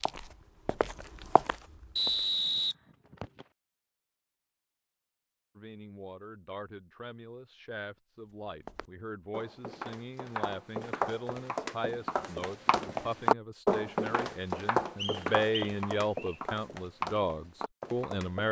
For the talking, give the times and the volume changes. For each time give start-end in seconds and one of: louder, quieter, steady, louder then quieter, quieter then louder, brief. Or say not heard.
5.5-18.4 louder.